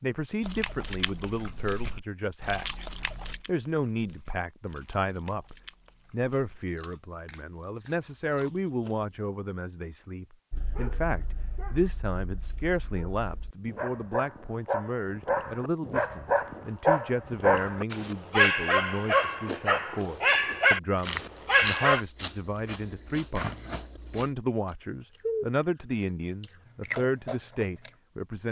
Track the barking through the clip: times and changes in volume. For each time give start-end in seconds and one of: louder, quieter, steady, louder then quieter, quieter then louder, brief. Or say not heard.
10.5-22.0 louder.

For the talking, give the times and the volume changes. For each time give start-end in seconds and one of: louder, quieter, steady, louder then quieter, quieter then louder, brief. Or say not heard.
0.0-28.4 steady.